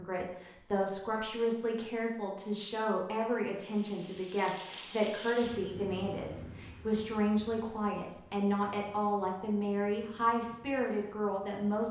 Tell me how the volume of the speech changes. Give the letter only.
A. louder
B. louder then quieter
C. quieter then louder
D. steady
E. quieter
D.